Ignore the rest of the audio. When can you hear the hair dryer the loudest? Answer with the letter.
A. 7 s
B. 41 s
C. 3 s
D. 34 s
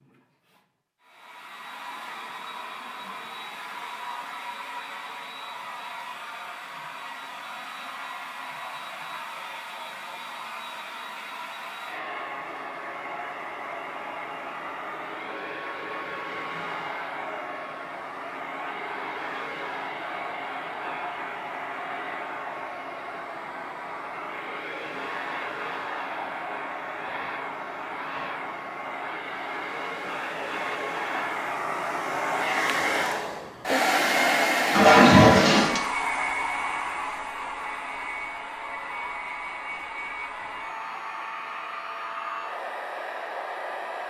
D.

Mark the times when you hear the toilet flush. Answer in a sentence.
You can hear the toilet flush from 34.7 to 35.8 s.